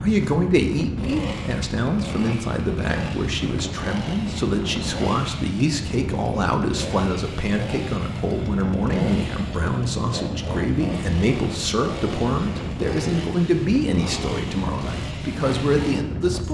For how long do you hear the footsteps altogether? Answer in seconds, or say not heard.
not heard.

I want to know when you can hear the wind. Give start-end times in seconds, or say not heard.
0.0-16.4.